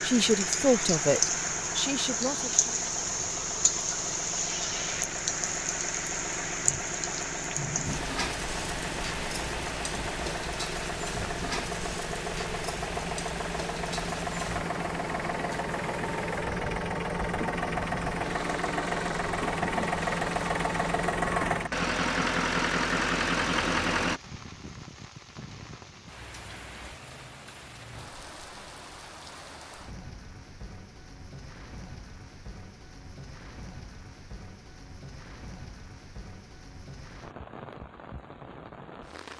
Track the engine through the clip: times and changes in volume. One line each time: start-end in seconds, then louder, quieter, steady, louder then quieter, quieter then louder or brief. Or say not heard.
0.0-24.2 louder.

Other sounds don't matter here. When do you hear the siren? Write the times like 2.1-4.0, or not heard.
not heard.